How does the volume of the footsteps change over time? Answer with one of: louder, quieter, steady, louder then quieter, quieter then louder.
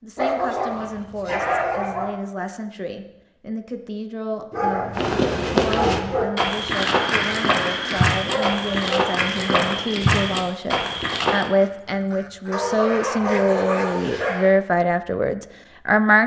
steady.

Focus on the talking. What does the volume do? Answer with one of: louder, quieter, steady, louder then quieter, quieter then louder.
louder.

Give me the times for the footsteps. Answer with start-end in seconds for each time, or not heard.
5.0-11.5.